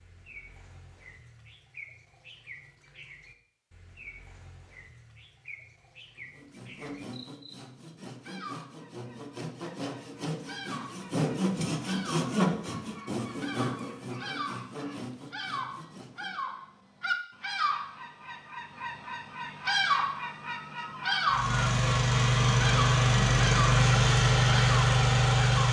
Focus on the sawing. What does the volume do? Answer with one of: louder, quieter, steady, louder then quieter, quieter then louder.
louder then quieter.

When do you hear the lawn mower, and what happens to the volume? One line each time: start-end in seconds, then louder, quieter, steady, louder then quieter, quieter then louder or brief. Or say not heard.
21.2-25.6 steady.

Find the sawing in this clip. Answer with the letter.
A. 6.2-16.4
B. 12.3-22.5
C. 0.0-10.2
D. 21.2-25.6
A.